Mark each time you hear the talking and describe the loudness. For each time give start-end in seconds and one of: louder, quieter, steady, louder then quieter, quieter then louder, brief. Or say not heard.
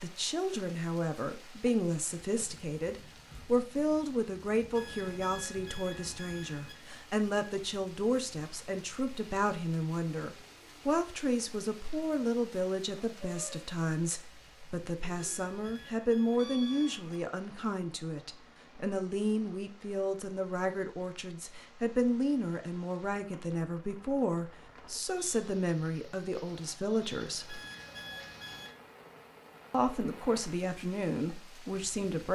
0.0-27.6 steady
29.7-32.2 brief.